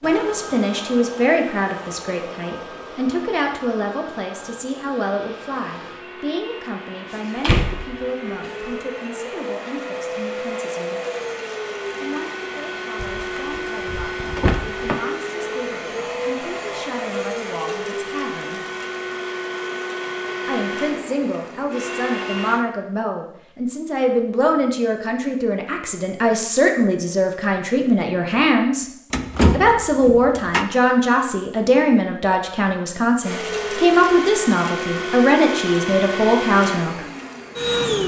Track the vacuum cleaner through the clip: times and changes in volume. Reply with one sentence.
You can hear the vacuum cleaner from 0.0 to 22.6 s, getting louder; and from 33.2 to 38.0 s, getting quieter.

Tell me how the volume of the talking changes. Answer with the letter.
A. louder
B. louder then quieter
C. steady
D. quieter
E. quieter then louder
E.